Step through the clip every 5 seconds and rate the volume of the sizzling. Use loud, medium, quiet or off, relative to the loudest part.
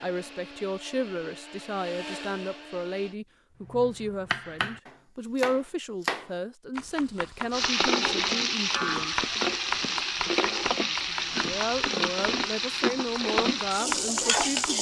off, loud, loud.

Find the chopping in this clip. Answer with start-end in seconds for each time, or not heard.
3.6-14.7.